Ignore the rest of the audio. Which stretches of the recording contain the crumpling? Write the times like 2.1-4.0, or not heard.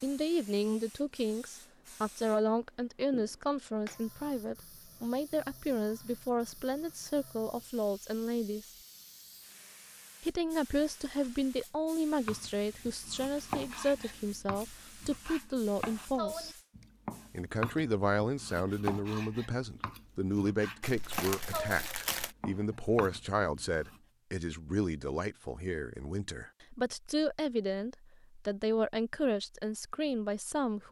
20.8-22.4.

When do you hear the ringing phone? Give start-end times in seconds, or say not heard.
not heard.